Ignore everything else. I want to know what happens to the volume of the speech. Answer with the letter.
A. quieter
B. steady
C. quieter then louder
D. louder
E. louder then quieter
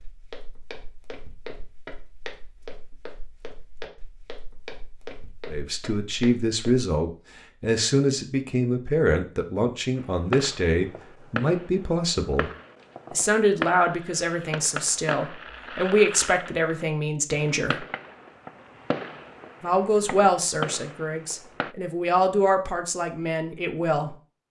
B.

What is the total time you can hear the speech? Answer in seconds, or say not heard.
16 s.